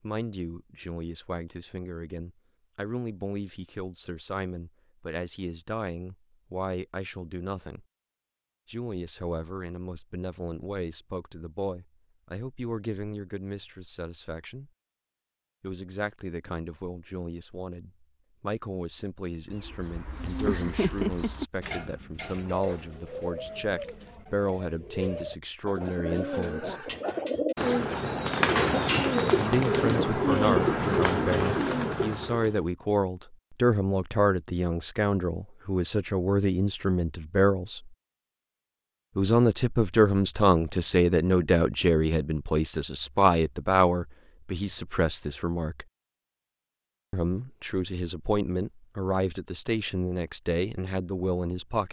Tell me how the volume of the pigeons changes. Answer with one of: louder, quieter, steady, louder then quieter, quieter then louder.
quieter then louder.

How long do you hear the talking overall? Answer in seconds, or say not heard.
45 s.